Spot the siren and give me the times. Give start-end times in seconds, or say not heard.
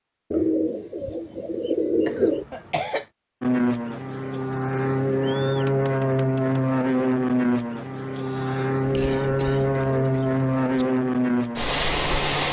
not heard.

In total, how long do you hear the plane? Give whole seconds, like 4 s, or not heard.
9 s.